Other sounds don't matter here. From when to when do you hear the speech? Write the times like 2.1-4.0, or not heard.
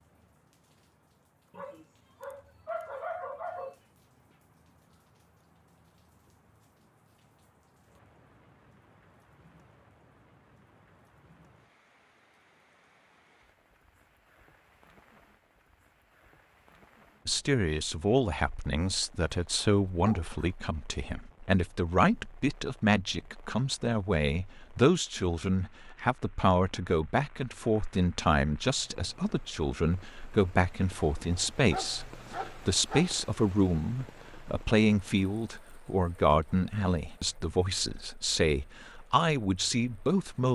17.2-40.5.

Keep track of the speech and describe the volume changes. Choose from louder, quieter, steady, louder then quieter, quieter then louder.
steady.